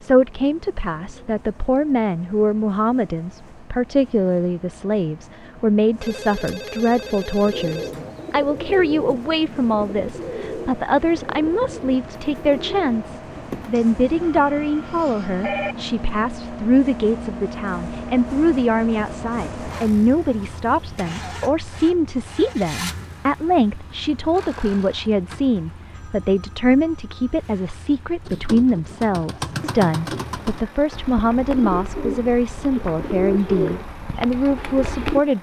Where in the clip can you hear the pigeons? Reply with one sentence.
You can hear the pigeons from 7.5 to 14.4 s and from 28.2 to 35.2 s.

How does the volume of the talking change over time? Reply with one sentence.
The loudness of the talking stays about the same.